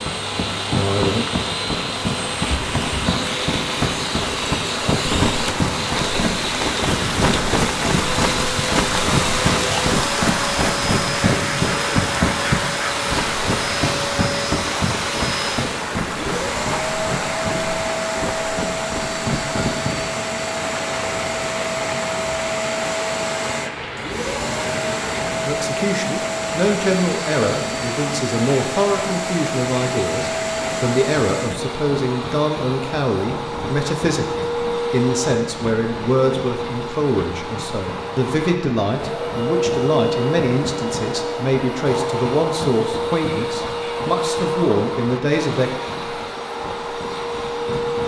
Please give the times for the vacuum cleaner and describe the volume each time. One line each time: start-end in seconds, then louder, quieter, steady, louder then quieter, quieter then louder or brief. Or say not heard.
0.0-48.0 steady.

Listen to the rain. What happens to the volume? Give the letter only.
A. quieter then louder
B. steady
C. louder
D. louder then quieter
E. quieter
E.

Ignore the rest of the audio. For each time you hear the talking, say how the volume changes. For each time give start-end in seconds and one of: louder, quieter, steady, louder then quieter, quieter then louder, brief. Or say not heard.
25.4-45.8 steady.